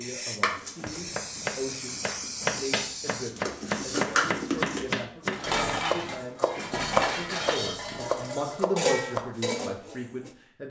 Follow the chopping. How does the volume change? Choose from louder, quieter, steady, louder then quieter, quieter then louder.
steady.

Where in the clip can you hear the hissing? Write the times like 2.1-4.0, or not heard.
0.0-4.0.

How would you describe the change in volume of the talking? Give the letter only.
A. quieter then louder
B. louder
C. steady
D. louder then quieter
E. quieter
B.